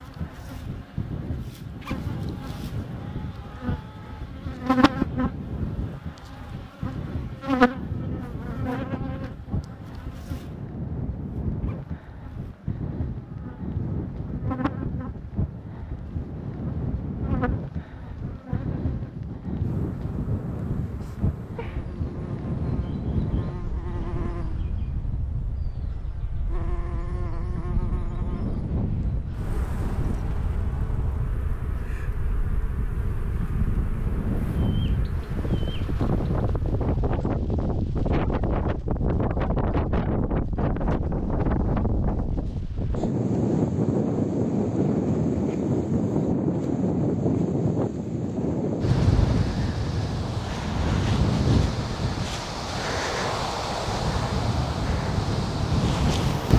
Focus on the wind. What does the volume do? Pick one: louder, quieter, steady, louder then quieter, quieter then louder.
louder.